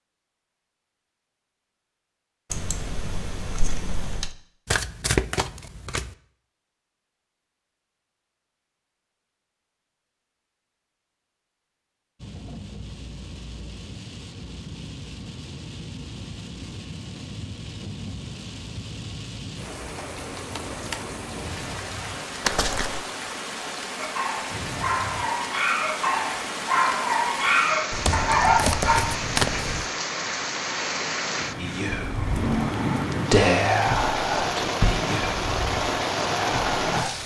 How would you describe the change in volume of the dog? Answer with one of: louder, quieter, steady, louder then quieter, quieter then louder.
louder.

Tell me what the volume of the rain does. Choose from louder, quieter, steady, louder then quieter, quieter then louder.
louder.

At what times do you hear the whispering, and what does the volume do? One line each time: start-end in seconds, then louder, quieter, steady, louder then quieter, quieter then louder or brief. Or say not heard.
31.6-37.1 louder then quieter.